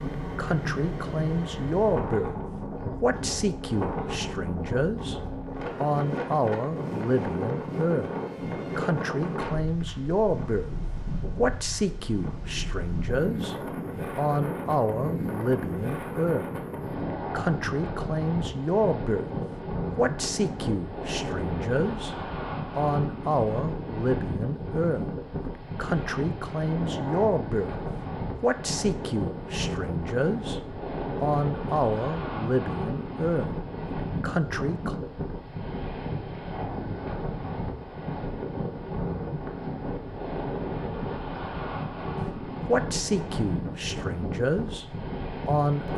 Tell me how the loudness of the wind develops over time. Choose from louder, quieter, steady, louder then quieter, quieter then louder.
steady.